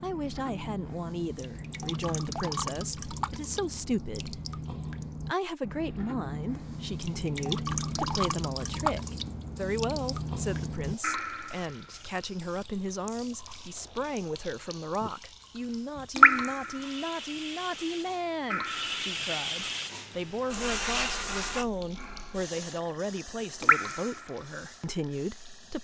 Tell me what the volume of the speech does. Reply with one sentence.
The loudness of the speech stays about the same.